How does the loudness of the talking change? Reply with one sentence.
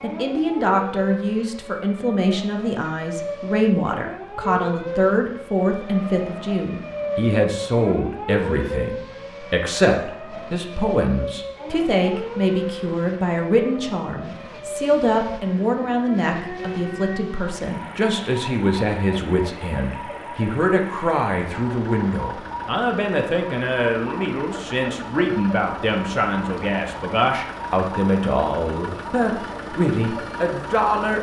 The loudness of the talking stays about the same.